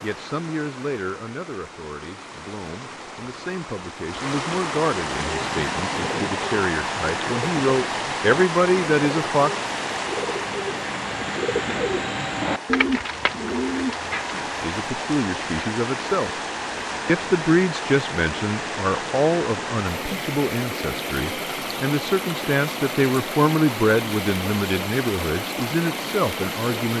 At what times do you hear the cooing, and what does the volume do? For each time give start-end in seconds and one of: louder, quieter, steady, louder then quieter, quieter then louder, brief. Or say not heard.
5.2-14.4 louder.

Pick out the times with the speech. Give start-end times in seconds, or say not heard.
0.0-9.5, 14.3-16.3, 17.1-26.9.